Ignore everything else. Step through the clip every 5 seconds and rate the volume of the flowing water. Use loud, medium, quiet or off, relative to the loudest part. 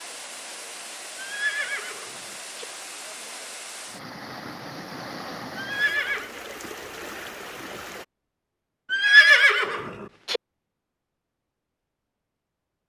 loud, loud, off.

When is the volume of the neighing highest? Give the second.
9 s.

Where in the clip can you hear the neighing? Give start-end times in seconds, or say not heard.
1.1-2.6, 5.5-6.3, 8.9-10.4.